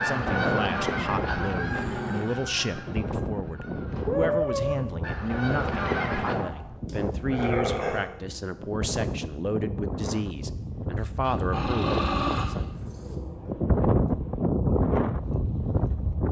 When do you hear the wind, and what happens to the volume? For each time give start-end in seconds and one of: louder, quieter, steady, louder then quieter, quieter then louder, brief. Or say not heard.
0.1-16.2 louder.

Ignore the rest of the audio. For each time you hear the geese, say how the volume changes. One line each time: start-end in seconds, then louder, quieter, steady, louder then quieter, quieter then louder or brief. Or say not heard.
0.0-6.3 quieter then louder.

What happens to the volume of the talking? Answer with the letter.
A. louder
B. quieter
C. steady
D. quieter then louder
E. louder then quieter
C.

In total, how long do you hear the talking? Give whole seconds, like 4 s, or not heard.
13 s.